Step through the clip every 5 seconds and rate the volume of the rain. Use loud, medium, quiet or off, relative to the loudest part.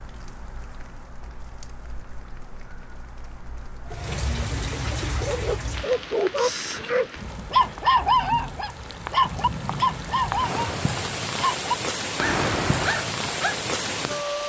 medium, medium, loud.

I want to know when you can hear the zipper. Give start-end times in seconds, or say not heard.
12.2-12.9.